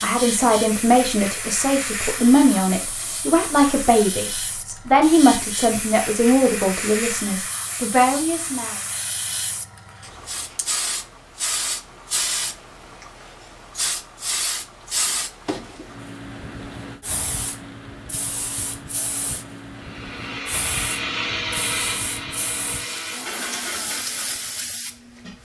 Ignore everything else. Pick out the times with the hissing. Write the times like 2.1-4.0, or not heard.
0.0-25.4.